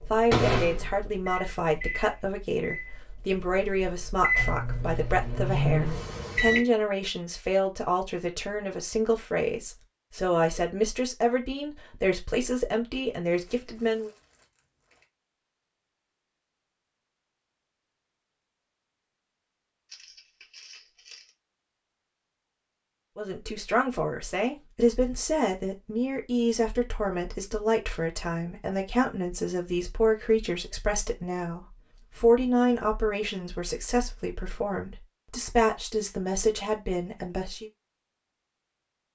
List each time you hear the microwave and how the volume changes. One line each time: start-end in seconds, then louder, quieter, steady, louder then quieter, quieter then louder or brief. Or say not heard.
0.0-6.6 quieter then louder.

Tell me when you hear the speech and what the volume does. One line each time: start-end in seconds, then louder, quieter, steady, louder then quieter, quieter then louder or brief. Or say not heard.
0.1-14.1 steady
23.1-37.7 steady.